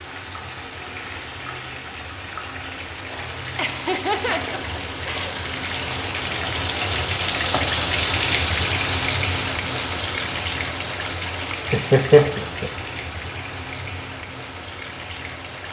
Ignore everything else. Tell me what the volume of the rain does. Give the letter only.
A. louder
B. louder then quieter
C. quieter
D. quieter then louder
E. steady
B.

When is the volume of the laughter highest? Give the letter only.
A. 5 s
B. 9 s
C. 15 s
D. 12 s
D.